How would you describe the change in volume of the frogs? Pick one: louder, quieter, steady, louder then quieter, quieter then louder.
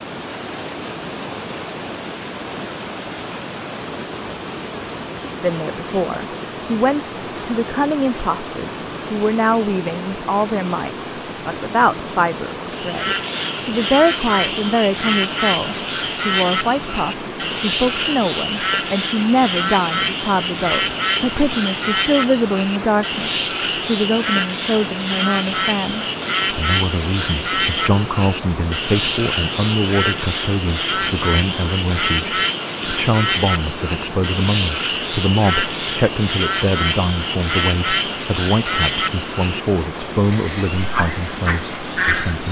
steady.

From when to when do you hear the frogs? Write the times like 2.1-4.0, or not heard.
12.8-42.4.